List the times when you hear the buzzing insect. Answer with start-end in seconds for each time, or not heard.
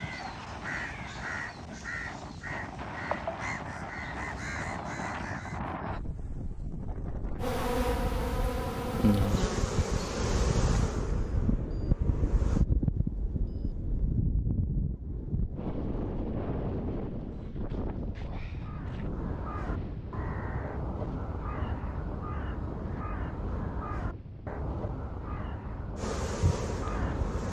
7.4-12.7, 25.9-27.4.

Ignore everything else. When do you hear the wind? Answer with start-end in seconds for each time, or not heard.
0.0-27.3.